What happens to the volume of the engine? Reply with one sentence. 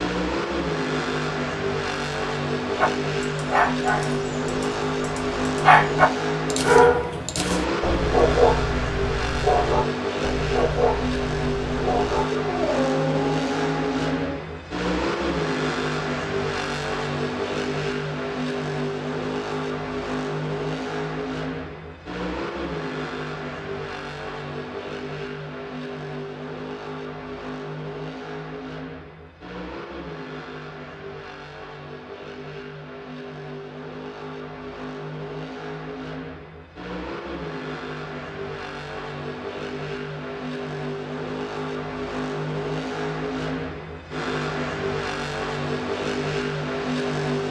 The volume of the engine goes down, then up.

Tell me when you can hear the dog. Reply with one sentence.
The dog can be heard from 2.8 to 14.4 s.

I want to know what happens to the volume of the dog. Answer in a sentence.
The loudness of the dog goes up, then down.